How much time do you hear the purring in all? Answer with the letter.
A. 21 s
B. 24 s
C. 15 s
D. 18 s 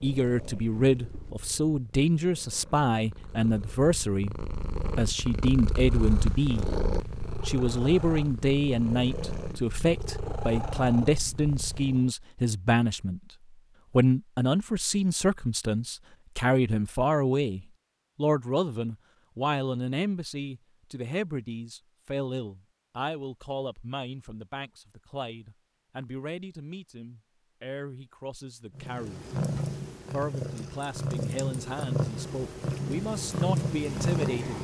D.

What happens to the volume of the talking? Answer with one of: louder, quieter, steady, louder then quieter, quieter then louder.
quieter.